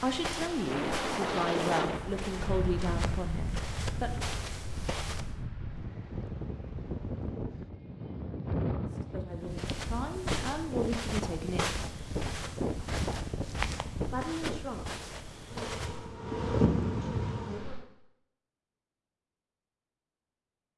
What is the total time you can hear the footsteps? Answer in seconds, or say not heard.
12 s.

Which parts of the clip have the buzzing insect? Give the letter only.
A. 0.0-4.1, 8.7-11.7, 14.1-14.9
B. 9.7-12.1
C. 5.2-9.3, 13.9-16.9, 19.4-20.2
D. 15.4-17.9
D.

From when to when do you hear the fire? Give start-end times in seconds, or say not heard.
not heard.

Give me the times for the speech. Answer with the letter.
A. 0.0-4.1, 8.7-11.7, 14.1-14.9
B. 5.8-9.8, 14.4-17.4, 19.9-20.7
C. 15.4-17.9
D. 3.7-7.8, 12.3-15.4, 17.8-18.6
A.